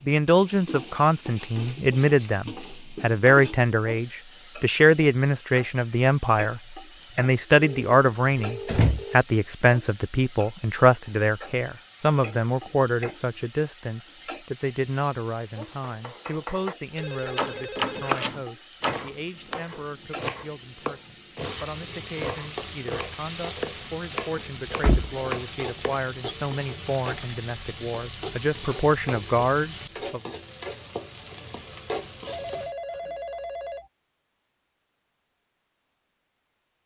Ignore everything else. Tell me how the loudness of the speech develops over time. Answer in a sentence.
The volume of the speech goes down, then up.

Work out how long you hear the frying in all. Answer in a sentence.
The frying can be heard for 33 seconds in total.